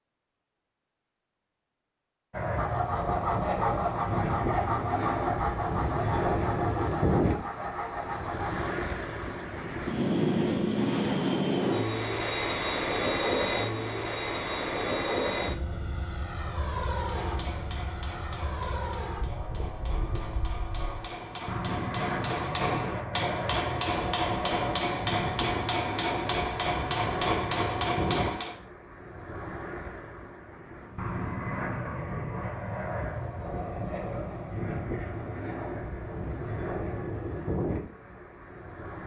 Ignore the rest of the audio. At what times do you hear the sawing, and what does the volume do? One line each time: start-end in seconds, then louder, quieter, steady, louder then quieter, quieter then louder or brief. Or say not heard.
2.5-8.7 quieter.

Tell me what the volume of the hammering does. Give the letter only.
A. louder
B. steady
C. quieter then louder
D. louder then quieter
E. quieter
A.